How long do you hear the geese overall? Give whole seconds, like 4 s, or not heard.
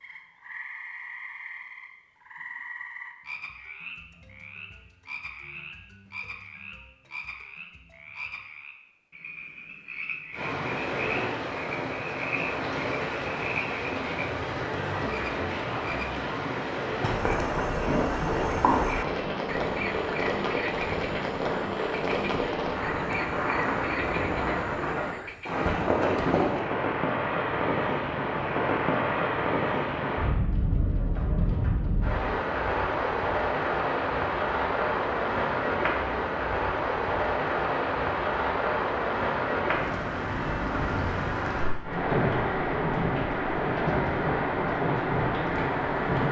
not heard.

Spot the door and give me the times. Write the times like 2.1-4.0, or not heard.
not heard.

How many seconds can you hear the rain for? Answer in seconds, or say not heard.
36 s.